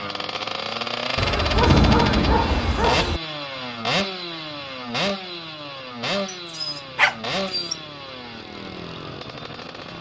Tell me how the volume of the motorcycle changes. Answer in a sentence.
The loudness of the motorcycle goes down.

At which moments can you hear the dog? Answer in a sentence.
You can hear the dog from 1.1 to 3.2 s and from 6.2 to 7.8 s.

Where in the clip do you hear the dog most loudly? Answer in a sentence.
The volume of the dog peaks at 2 seconds.